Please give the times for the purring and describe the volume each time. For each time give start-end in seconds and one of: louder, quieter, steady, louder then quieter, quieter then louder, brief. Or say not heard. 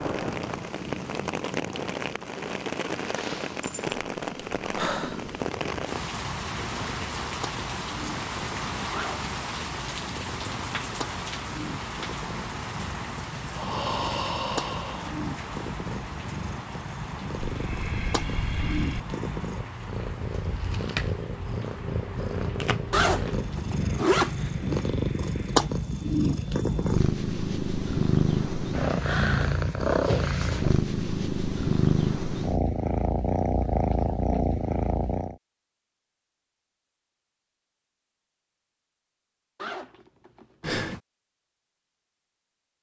0.1-35.4 louder.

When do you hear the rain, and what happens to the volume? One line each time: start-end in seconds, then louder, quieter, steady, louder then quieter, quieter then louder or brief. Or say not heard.
0.0-25.9 quieter.